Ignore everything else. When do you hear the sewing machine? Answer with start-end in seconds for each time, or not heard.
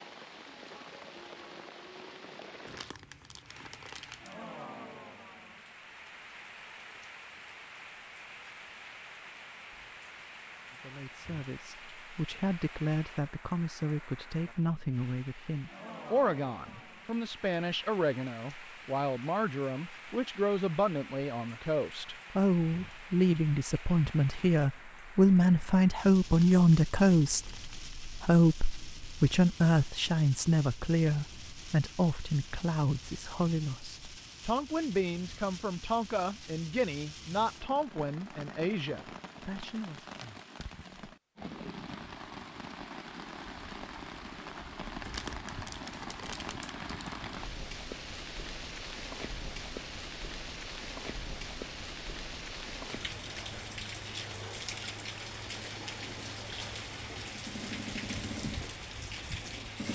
57.1-59.8.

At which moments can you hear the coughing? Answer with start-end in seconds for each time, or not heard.
not heard.